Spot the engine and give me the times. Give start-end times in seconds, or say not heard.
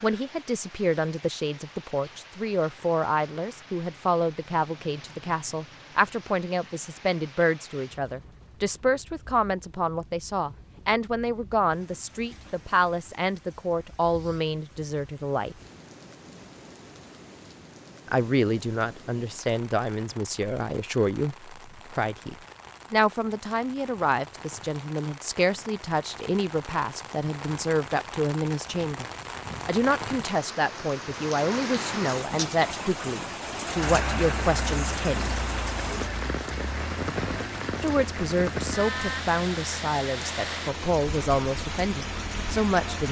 33.8-43.0.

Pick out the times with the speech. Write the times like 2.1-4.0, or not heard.
0.0-15.6, 18.1-29.1, 29.6-35.4, 37.8-43.0.